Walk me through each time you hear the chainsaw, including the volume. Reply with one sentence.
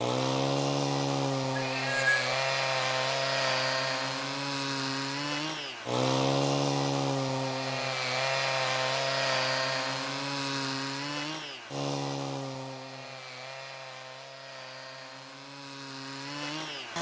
You can hear the chainsaw from 0.0 to 16.9 s, getting quieter.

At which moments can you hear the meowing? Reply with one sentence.
You can hear the meowing from 1.6 to 2.3 s.